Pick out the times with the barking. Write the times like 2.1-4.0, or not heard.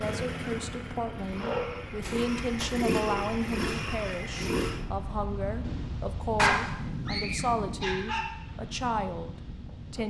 1.4-3.3, 6.3-8.3.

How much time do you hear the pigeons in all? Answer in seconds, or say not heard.
not heard.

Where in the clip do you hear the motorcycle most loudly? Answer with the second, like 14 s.
3 s.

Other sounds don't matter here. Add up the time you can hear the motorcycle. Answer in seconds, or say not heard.
5 s.